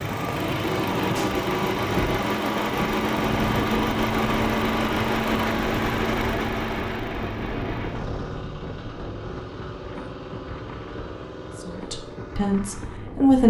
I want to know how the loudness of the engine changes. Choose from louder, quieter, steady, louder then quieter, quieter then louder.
quieter.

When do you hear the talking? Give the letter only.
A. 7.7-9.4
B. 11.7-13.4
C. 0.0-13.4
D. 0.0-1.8
B.